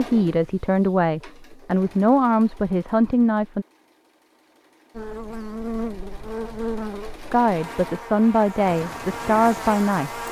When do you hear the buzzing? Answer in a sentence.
You can hear the buzzing from 5.0 to 10.2 s.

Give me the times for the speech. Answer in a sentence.
The speech can be heard from 0.0 to 3.6 s and from 7.3 to 10.2 s.